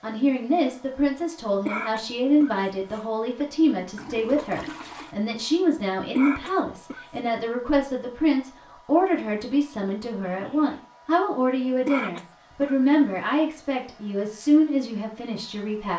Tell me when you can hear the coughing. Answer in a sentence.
The coughing can be heard from 1.6 to 3.5 s, from 6.2 to 7.2 s and from 11.8 to 12.8 s.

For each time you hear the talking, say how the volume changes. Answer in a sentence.
You can hear the talking from 0.0 to 15.9 s, at a steady volume.